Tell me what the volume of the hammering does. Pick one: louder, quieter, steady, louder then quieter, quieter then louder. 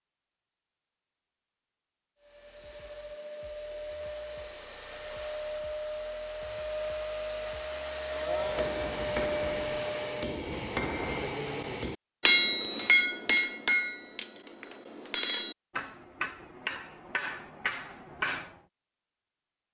louder then quieter.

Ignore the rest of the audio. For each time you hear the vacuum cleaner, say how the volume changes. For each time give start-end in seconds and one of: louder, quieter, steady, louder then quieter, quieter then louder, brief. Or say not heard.
2.2-10.4 louder.